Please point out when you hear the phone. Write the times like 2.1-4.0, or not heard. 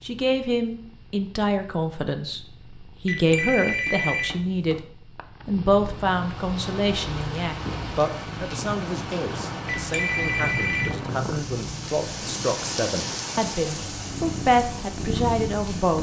3.0-4.8, 9.7-11.1.